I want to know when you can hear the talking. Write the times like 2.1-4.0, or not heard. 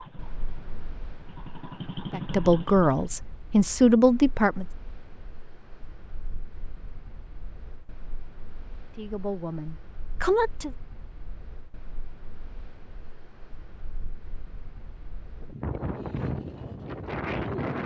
2.1-4.7, 8.9-10.8.